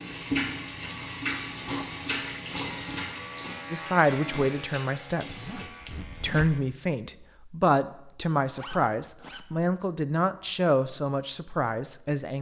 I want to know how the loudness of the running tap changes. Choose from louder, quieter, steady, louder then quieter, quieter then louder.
quieter.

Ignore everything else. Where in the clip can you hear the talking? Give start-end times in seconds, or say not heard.
3.7-5.6, 6.2-12.3.